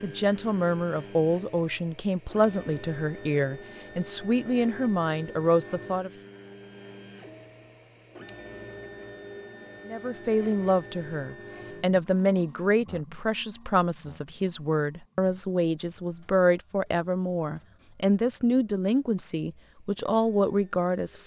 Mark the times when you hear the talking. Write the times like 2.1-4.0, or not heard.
0.0-6.1, 9.8-21.2.